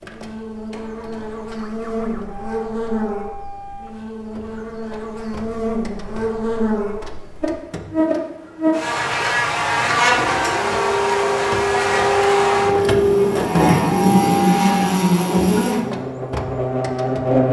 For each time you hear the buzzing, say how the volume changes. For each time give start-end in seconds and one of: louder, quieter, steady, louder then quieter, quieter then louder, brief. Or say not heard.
0.0-17.4 louder.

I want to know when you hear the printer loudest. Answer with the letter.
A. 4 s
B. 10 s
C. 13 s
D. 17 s
C.